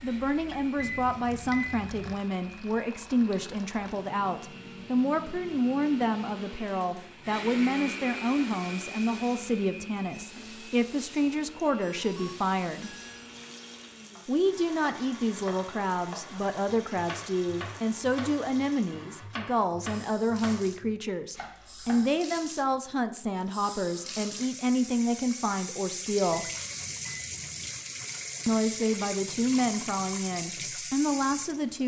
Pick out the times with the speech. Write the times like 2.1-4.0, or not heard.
0.0-12.9, 14.2-26.5, 28.4-31.8.